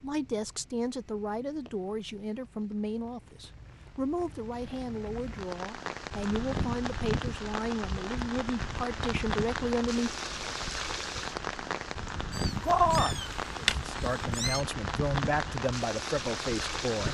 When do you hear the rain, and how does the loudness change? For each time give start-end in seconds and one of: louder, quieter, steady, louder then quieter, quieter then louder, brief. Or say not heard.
0.0-17.0 louder.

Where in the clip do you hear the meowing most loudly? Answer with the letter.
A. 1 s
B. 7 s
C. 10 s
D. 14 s
D.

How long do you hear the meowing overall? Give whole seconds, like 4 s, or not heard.
2 s.